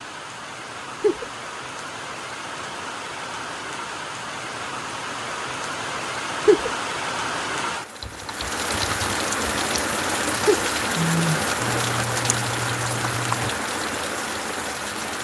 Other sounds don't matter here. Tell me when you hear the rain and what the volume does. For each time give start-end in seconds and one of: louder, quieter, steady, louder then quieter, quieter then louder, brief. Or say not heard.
0.0-15.1 louder.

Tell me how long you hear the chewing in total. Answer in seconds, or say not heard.
not heard.